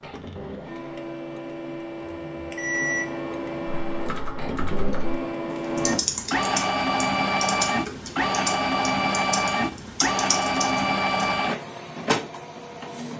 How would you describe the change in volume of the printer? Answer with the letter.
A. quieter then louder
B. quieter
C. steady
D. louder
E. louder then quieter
D.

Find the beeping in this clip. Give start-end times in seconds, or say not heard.
2.5-3.1.